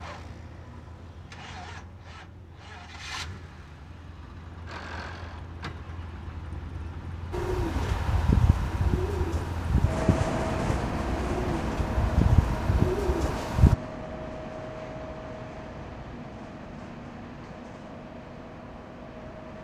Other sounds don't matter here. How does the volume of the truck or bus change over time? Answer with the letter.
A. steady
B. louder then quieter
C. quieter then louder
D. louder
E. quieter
B.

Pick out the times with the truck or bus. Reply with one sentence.
The truck or bus can be heard from 0.0 to 19.6 s.